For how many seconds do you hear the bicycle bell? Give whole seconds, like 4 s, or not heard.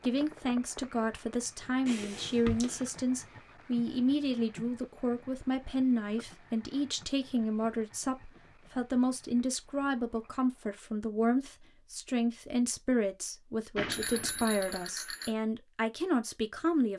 3 s.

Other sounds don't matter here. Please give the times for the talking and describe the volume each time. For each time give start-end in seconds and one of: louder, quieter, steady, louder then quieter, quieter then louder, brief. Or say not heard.
0.0-16.9 steady.